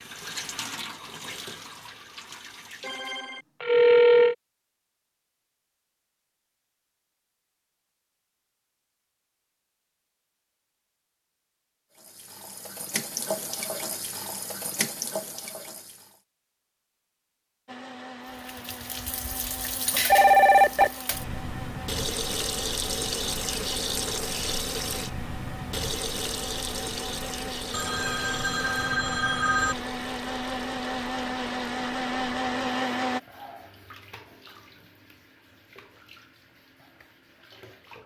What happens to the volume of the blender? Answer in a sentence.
The volume of the blender goes up.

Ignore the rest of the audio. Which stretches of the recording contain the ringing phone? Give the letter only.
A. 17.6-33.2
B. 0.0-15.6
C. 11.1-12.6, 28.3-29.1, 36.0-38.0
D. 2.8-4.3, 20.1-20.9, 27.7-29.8
D.